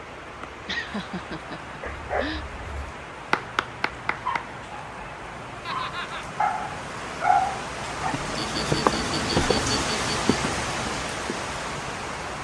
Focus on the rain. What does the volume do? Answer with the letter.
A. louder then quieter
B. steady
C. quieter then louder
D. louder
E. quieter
D.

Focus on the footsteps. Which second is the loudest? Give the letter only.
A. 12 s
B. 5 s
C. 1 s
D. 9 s
D.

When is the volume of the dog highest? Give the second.
7 s.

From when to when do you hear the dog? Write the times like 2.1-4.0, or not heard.
1.8-8.2.